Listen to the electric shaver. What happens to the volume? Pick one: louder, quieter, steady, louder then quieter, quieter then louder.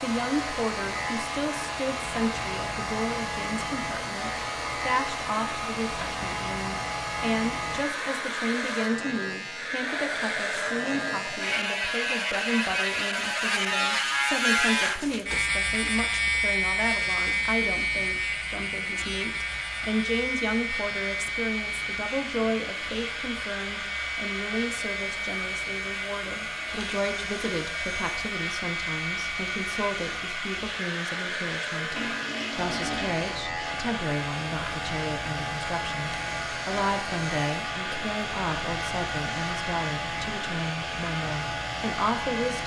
louder then quieter.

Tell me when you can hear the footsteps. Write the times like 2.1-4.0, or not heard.
not heard.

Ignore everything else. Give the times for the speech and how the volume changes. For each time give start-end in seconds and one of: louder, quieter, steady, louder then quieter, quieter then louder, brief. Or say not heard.
0.0-42.6 steady.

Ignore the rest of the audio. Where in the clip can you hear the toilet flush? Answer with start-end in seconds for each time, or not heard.
31.9-33.2.